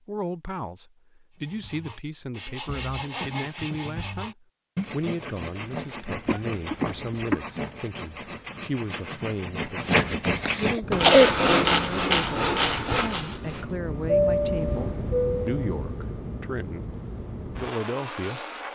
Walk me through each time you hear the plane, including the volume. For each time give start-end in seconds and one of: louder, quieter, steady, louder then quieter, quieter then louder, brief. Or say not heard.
10.8-18.6 louder then quieter.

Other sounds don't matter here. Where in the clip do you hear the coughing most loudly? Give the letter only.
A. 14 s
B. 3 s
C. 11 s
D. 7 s
C.